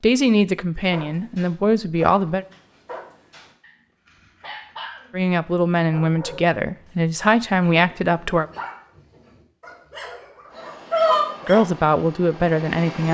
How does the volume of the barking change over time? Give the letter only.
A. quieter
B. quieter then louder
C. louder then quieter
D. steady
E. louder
E.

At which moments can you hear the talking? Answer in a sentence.
The talking can be heard from 0.0 to 2.5 s, from 5.1 to 8.4 s and from 11.4 to 13.0 s.